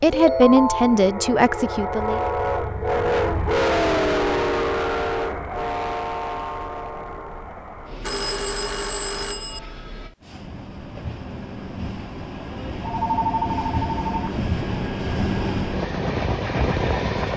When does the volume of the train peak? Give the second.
4 s.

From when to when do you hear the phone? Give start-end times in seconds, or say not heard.
0.1-1.1, 8.0-9.6, 12.8-14.3.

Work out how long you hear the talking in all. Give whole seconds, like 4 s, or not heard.
2 s.